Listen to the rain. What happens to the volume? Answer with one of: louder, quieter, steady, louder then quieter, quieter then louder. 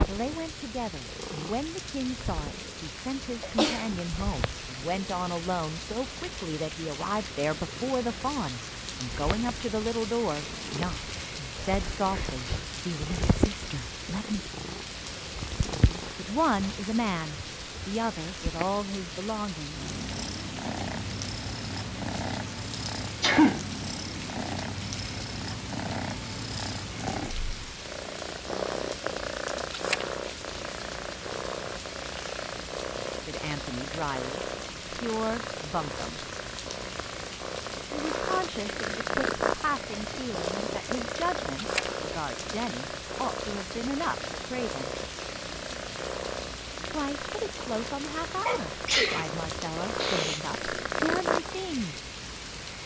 steady.